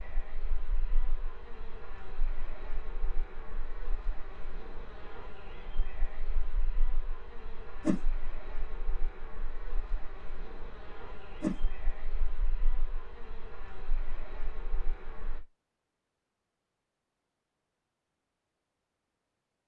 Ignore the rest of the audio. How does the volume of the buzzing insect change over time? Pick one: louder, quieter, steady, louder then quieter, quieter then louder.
steady.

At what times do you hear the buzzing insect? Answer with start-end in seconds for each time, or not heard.
0.0-15.4.